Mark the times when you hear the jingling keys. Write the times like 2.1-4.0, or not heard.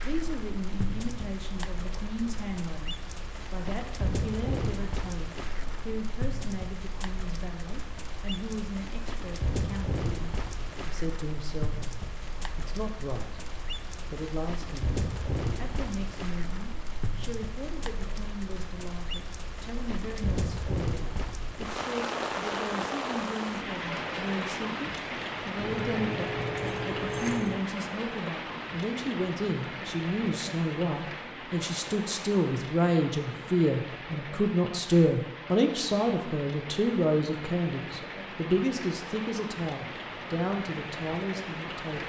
25.6-27.6.